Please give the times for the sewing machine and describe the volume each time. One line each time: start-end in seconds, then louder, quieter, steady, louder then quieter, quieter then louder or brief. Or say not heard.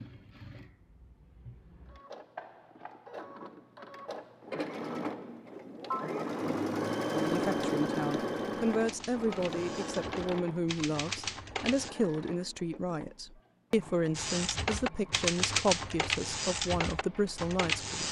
0.0-18.0 louder then quieter.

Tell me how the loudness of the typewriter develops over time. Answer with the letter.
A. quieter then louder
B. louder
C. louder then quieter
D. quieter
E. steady
B.